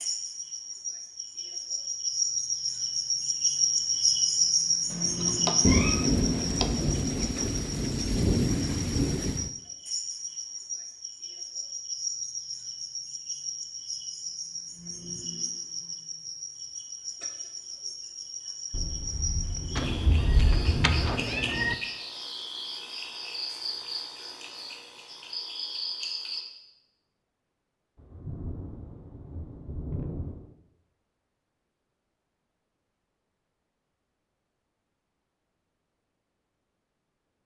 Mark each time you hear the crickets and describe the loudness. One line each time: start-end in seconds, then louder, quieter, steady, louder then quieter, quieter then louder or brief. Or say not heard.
0.0-26.4 quieter.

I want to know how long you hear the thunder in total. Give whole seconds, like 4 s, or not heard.
9 s.